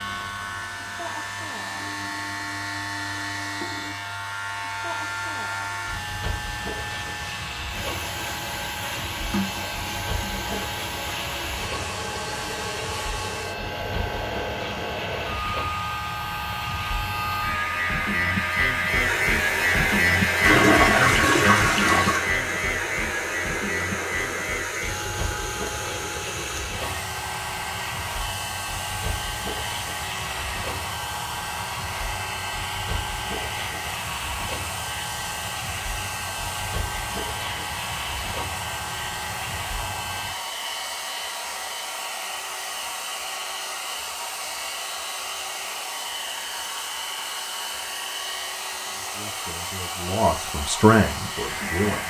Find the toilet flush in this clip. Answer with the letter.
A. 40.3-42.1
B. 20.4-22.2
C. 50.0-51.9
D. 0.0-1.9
B.